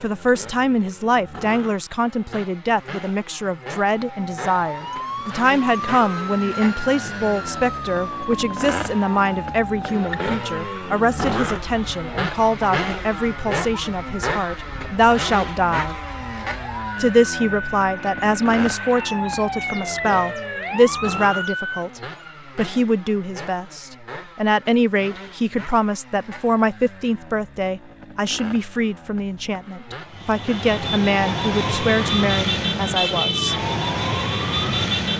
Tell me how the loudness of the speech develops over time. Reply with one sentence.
The volume of the speech stays about the same.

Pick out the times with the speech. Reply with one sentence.
The speech can be heard from 0.0 to 15.9 s and from 17.0 to 33.5 s.